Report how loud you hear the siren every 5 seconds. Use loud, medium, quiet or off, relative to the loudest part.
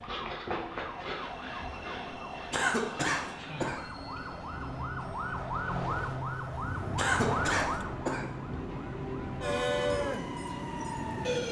medium, loud, loud.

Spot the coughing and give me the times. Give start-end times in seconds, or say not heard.
2.5-3.8, 7.0-8.2.